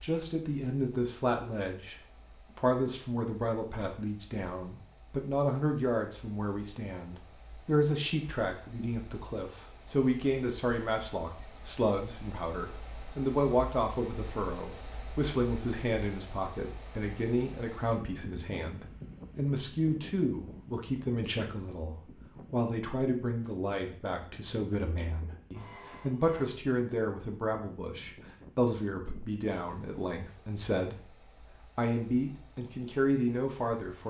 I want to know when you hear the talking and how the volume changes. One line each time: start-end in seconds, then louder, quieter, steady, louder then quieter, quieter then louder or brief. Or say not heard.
0.0-34.0 steady.